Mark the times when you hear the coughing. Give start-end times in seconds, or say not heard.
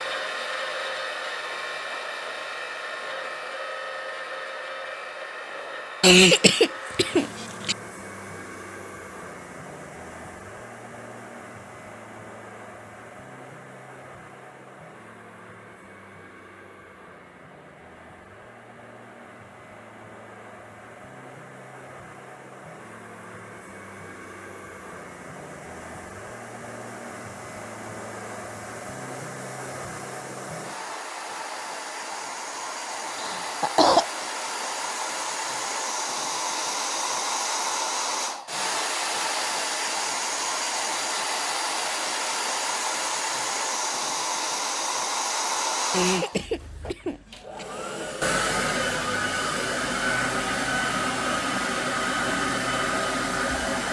6.0-7.8, 33.1-34.0, 45.9-47.6.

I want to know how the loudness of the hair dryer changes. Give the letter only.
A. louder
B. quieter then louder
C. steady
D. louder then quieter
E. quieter
B.